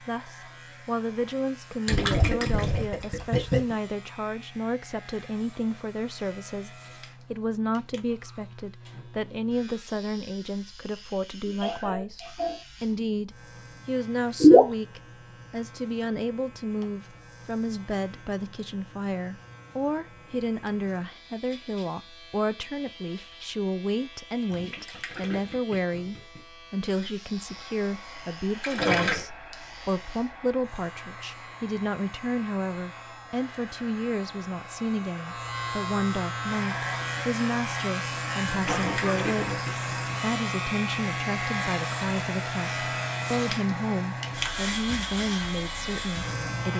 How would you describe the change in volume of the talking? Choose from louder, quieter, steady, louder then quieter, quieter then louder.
steady.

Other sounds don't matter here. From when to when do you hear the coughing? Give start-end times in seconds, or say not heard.
11.4-13.2, 38.6-39.6.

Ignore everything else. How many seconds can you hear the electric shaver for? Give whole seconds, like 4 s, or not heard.
47 s.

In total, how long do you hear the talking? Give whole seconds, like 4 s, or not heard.
46 s.